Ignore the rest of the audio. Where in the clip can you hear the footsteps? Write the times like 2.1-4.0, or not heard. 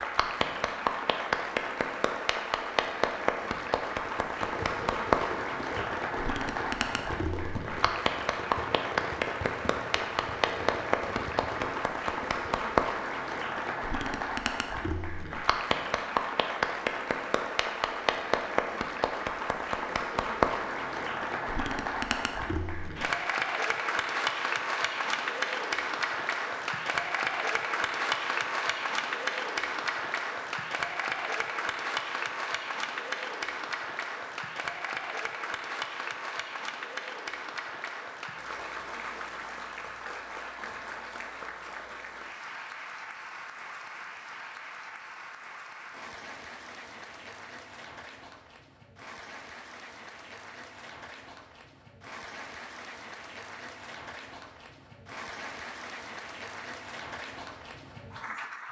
not heard.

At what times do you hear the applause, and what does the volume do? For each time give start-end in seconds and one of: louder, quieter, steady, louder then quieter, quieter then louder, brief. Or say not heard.
0.0-58.6 quieter.